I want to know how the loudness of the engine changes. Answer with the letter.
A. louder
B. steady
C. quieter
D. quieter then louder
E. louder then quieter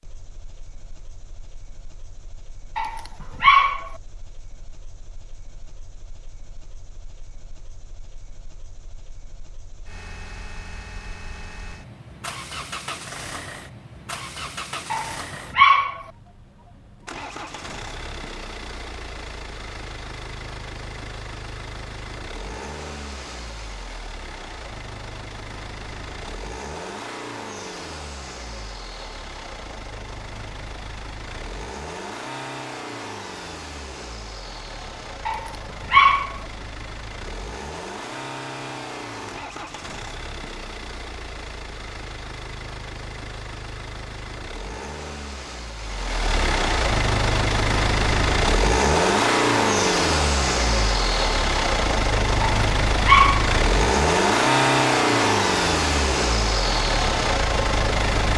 A.